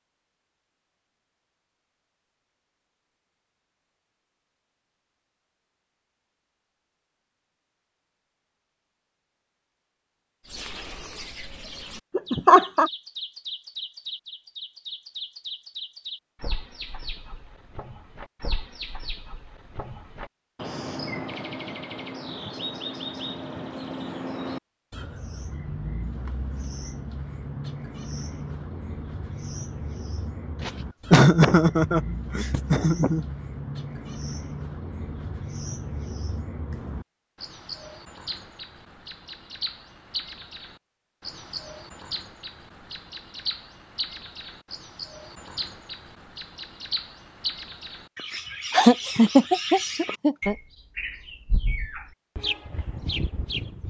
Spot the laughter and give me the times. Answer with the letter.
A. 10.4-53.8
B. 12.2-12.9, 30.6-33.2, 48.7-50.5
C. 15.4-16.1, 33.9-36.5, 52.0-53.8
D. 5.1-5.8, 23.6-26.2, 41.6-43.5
B.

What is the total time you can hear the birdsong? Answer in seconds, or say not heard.
43 s.